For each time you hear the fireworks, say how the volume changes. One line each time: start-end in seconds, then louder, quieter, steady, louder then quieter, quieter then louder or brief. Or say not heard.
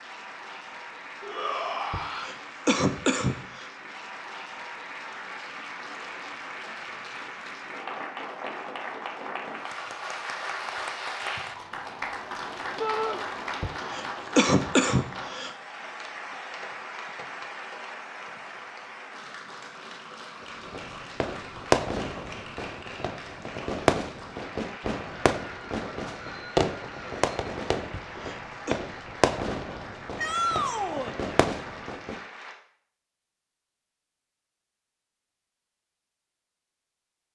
20.6-32.2 quieter.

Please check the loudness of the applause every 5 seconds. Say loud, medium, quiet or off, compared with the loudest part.
medium, loud, loud, medium, medium, medium, medium, off.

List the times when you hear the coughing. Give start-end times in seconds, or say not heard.
1.9-3.6, 13.6-15.6, 28.1-28.8.